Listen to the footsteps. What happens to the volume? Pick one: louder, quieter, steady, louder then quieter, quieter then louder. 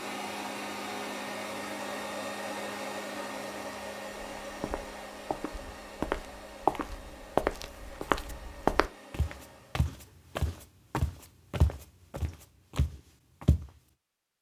louder then quieter.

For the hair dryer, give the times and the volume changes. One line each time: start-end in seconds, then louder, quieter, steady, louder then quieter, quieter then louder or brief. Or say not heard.
0.0-9.9 quieter.